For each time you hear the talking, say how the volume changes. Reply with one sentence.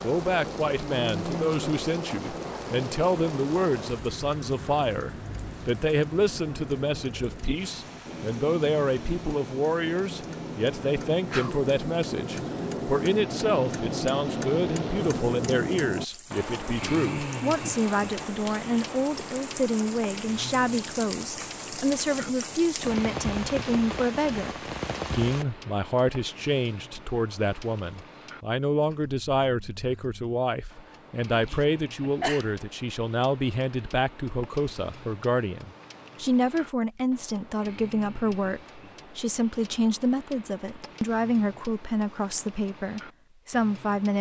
You can hear the talking from 0.0 to 44.1 s, at a steady volume.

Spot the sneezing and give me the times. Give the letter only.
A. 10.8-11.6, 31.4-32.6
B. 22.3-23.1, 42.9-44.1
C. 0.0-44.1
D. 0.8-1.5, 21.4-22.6
A.